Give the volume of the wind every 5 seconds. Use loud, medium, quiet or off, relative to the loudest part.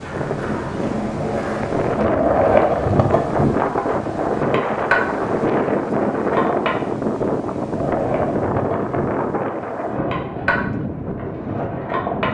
loud, loud, medium.